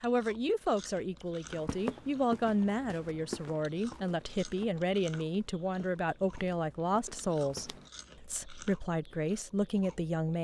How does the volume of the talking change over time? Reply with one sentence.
The volume of the talking stays about the same.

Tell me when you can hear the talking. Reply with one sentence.
The talking can be heard from 0.0 to 10.3 s.